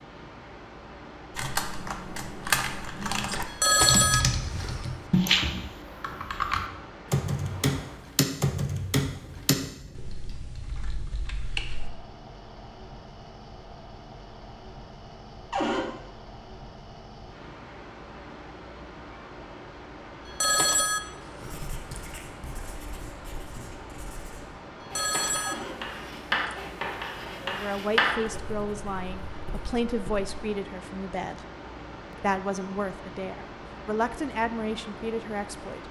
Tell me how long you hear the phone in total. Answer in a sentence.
The phone can be heard for 5 seconds in total.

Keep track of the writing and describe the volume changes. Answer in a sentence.
The loudness of the writing goes up.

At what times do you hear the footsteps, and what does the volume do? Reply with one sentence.
The footsteps can't be heard in this clip.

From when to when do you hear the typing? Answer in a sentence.
You can hear the typing from 1.3 to 11.9 s.